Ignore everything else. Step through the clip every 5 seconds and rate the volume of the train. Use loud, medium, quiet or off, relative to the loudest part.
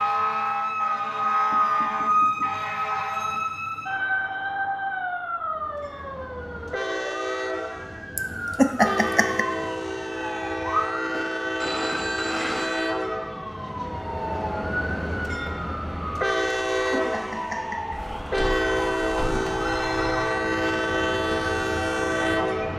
off, medium, medium, loud, loud.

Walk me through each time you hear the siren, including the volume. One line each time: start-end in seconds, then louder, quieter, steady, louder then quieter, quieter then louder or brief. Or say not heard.
0.0-22.7 quieter.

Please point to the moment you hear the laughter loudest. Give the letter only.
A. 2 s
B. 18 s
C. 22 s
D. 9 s
D.